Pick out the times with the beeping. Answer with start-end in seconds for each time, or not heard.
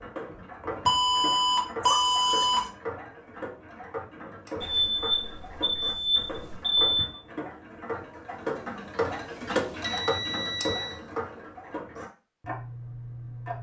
0.8-2.6, 4.6-7.2, 9.8-11.0.